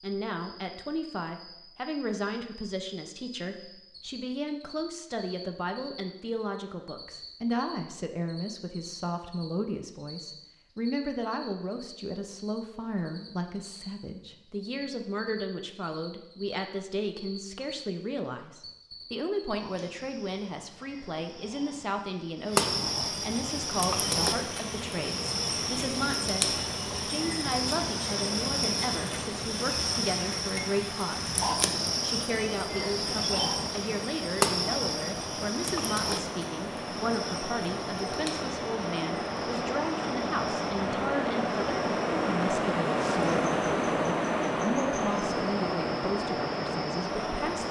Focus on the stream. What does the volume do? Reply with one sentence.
The volume of the stream goes up.